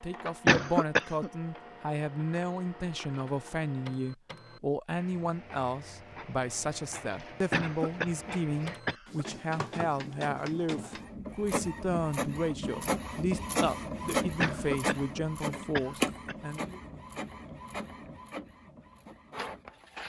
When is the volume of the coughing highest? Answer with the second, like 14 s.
1 s.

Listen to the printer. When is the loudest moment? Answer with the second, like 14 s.
14 s.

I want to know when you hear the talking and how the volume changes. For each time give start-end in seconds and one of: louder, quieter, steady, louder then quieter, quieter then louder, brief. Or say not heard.
0.0-16.8 steady.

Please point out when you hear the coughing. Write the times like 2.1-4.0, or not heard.
0.5-1.3, 7.5-9.2, 14.4-16.4.